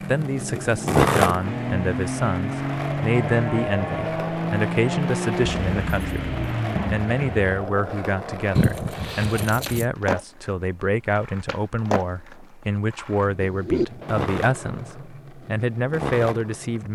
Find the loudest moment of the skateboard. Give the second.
1 s.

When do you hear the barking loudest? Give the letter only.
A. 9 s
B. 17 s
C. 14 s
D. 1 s
C.